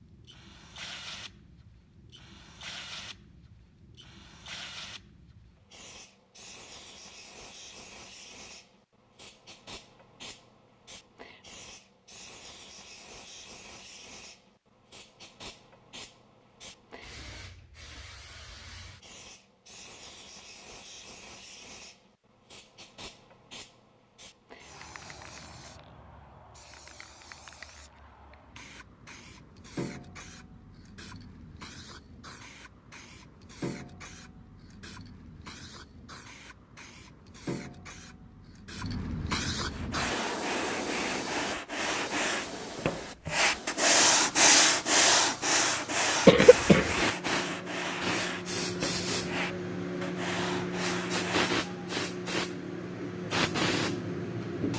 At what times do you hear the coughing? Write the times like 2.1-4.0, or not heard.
46.2-47.0.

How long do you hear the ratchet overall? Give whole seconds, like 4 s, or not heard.
not heard.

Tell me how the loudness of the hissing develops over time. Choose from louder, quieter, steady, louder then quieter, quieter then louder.
louder.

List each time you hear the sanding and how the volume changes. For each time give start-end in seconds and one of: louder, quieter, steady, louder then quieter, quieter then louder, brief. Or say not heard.
39.6-51.5 louder then quieter.